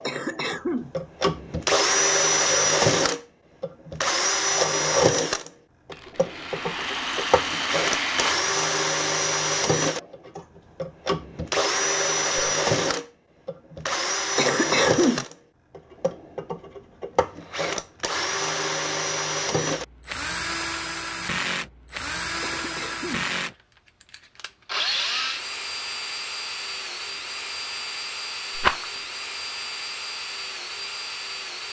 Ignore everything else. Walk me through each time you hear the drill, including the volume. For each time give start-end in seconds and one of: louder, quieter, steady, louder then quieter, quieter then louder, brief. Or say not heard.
0.0-31.6 quieter.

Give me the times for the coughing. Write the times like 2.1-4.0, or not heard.
0.1-0.9, 14.3-15.2, 22.4-23.3.